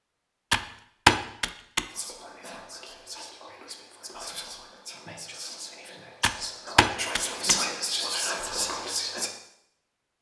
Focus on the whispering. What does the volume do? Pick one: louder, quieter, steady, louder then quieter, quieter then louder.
louder.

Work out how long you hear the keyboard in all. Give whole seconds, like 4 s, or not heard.
3 s.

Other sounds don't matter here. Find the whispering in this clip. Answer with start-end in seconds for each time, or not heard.
1.9-9.3.